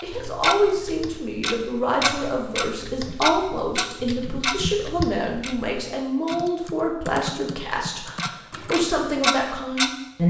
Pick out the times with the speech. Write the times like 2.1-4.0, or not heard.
0.0-10.2.